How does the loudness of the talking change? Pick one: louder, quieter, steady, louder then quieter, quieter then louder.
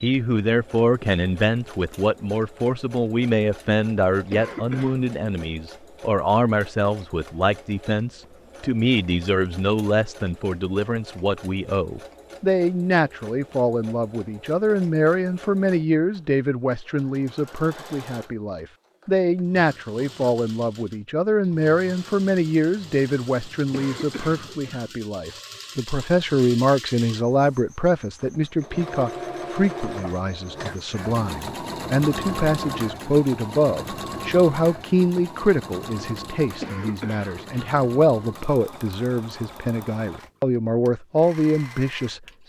steady.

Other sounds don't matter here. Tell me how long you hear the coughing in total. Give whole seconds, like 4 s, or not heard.
3 s.